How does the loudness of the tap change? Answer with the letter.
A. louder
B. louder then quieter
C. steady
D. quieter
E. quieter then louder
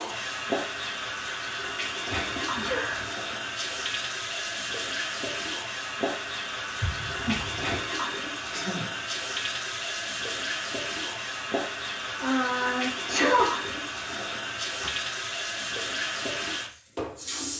C.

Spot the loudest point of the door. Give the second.
7 s.